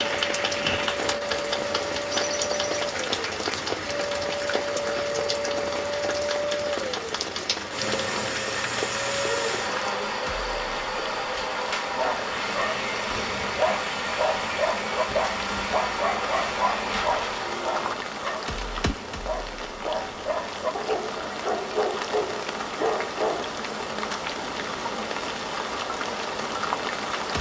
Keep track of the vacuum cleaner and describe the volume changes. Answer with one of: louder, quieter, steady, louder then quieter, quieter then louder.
steady.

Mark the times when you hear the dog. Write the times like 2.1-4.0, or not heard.
11.9-23.6.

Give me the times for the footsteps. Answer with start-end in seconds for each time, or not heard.
not heard.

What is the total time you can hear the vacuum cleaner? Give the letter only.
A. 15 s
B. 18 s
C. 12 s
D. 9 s
B.